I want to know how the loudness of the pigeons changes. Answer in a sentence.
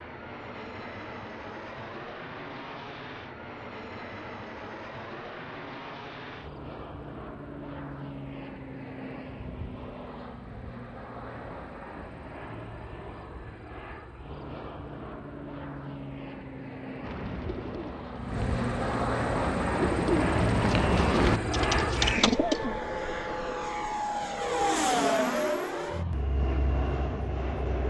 The volume of the pigeons goes up.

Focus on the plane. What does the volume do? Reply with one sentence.
The volume of the plane goes up.